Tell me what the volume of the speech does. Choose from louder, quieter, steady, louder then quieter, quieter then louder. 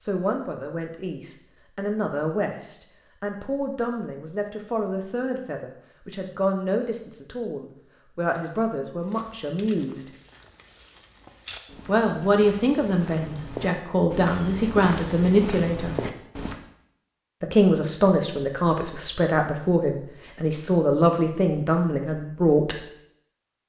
louder.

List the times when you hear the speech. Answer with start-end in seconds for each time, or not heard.
0.0-10.1, 11.8-16.0, 17.4-22.8.